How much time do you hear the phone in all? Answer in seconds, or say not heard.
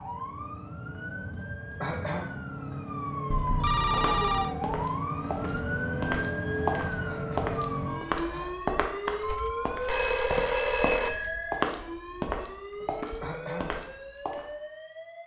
4 s.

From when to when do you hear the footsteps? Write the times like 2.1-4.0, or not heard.
3.9-14.4.